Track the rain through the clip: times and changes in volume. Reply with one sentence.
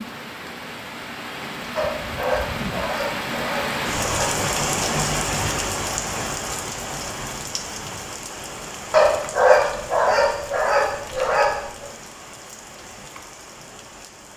The rain can be heard from 0.0 to 14.3 s, getting louder then quieter.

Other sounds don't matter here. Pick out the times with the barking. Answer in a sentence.
The barking can be heard from 1.8 to 4.3 s and from 8.9 to 11.8 s.